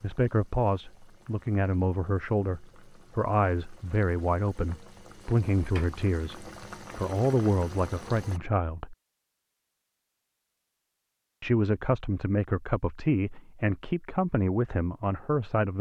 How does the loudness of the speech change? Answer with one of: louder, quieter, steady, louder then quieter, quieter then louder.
steady.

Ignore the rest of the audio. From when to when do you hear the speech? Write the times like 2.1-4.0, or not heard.
0.0-8.9, 11.4-15.7.